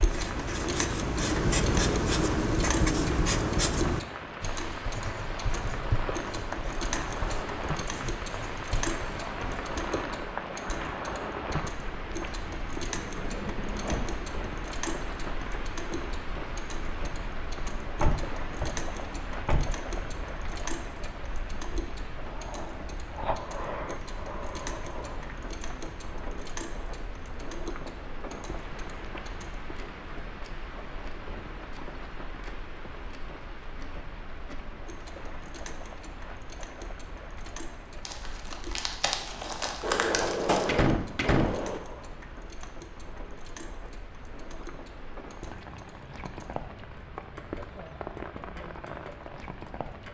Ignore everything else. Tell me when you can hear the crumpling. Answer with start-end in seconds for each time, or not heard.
38.0-40.7.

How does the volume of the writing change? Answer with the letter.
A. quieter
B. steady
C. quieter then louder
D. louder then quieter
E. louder
A.